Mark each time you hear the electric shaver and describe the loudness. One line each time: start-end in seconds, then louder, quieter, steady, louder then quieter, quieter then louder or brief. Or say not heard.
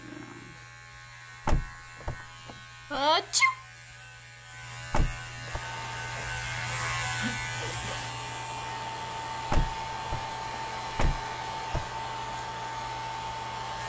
0.0-13.8 louder then quieter.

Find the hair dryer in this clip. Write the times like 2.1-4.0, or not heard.
5.5-13.8.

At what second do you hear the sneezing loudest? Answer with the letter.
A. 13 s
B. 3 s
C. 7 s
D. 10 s
B.